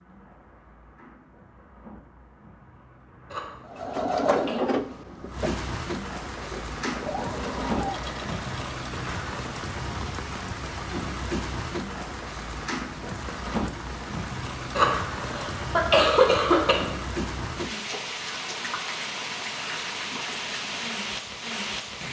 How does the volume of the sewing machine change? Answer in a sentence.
The loudness of the sewing machine goes down, then up.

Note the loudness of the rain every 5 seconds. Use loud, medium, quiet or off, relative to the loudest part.
quiet, loud, loud, loud, loud.